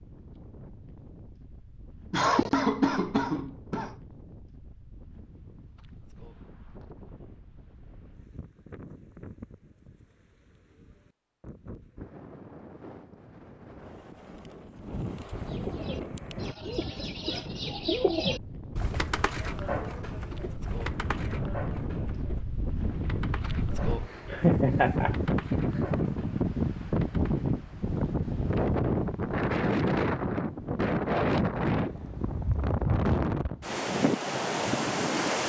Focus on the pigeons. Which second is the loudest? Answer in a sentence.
The loudest moment of the pigeons is at 18 seconds.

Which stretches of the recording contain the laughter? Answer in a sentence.
You can hear the laughter from 2.1 to 4.0 s and from 24.3 to 25.1 s.